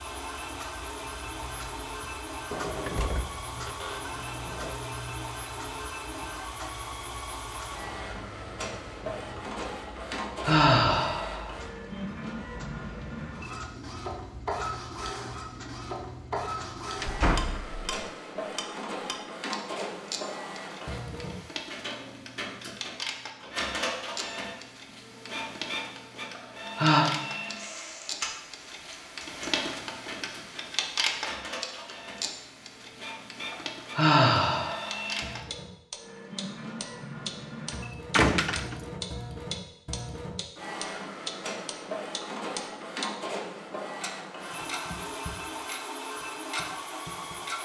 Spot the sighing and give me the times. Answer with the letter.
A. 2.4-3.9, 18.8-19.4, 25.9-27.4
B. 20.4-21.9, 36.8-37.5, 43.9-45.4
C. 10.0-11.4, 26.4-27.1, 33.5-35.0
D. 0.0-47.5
C.